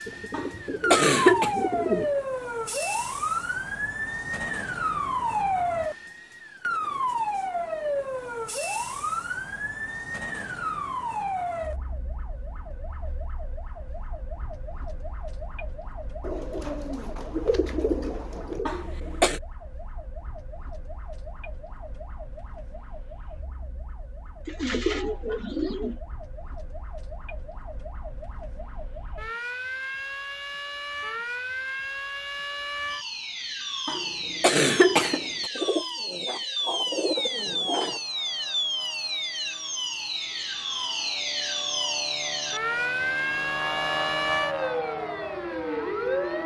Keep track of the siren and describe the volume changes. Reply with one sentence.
The volume of the siren goes down, then up.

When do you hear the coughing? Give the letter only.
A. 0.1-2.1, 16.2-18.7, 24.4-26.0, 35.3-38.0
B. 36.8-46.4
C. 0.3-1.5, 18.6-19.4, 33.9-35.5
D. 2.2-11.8
C.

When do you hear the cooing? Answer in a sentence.
You can hear the cooing from 0.1 to 2.1 s, from 16.2 to 18.7 s, from 24.4 to 26.0 s and from 35.3 to 38.0 s.